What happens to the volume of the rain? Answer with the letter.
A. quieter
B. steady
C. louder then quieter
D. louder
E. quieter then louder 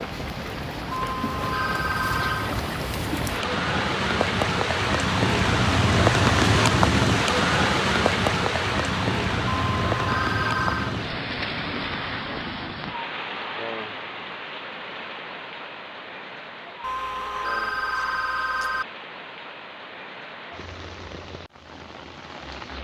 C.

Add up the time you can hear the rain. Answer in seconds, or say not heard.
23 s.